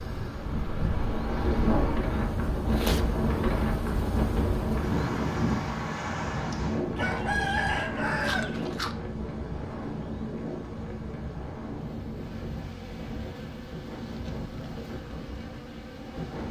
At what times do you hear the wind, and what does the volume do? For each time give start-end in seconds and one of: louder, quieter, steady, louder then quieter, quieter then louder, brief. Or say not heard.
0.0-16.4 quieter.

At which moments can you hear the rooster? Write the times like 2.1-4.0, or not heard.
7.0-8.9.